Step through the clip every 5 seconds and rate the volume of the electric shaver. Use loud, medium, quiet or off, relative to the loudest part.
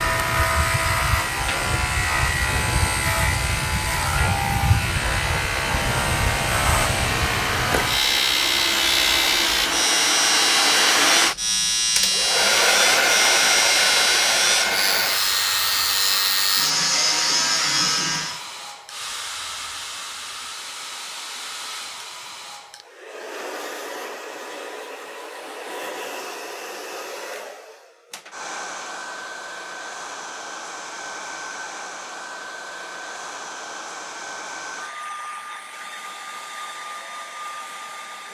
loud, loud, loud, loud, off, off, off, off.